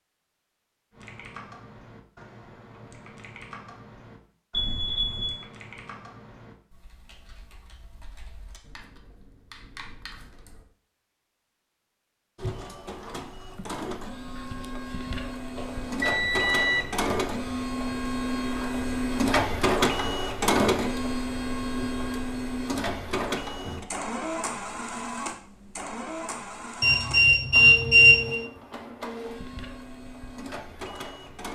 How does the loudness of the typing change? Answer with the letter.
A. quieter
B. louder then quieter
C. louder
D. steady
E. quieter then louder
E.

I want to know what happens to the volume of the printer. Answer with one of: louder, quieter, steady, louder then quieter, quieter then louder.
louder then quieter.